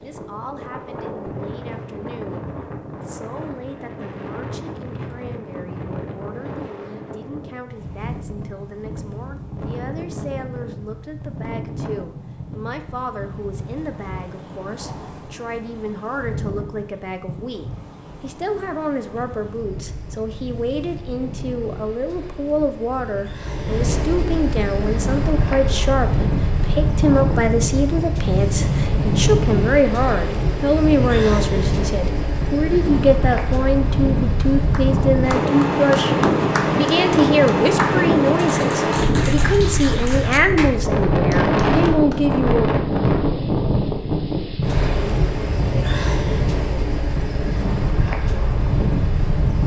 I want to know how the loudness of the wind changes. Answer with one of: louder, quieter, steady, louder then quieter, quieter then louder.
louder.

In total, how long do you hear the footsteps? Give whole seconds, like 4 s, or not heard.
not heard.